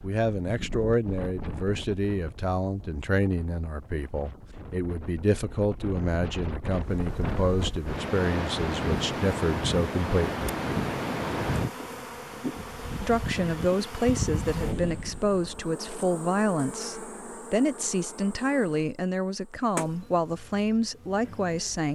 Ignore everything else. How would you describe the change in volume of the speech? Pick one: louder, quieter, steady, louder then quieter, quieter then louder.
steady.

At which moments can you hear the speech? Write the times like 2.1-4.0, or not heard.
0.0-10.5, 13.0-21.9.